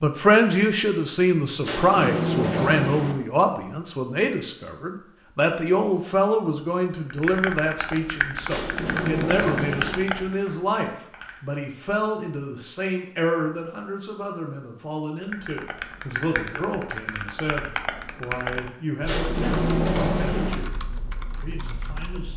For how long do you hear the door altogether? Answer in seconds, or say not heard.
5 s.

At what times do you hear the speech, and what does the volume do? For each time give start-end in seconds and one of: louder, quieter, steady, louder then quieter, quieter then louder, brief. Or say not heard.
0.0-20.8 quieter
21.4-22.3 brief.